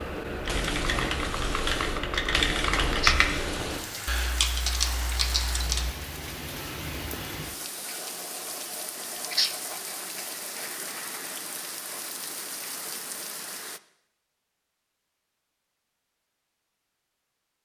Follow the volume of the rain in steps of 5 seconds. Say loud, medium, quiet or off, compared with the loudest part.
loud, loud, loud, off.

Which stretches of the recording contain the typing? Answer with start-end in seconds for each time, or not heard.
0.0-6.0.